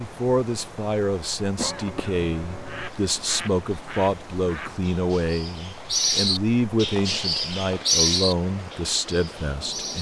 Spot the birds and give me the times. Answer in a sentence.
You can hear the birds from 2.6 to 9.9 s.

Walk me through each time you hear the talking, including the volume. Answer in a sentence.
The talking can be heard from 0.0 to 9.9 s, at a steady volume.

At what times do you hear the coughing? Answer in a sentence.
You can hear the coughing from 1.6 to 2.9 s.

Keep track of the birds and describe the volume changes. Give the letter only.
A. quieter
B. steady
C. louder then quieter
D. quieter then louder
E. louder
C.